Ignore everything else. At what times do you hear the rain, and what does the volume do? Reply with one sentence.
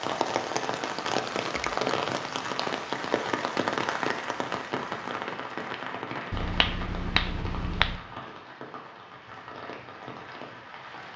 You can hear the rain from 0.0 to 11.1 s, getting quieter.